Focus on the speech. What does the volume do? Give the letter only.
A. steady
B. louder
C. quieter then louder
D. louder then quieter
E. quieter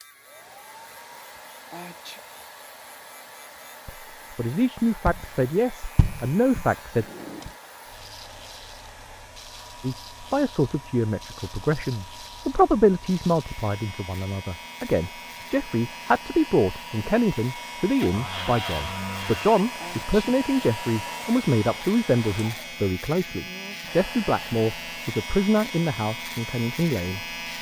A.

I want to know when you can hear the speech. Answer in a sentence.
You can hear the speech from 3.9 to 7.0 s and from 9.8 to 27.2 s.